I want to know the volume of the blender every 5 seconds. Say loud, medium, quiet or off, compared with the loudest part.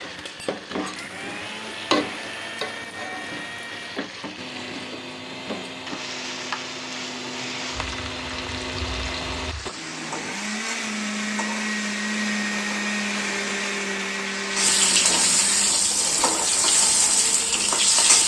medium, medium, loud, medium.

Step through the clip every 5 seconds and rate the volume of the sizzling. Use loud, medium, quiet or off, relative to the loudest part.
medium, quiet, medium, loud.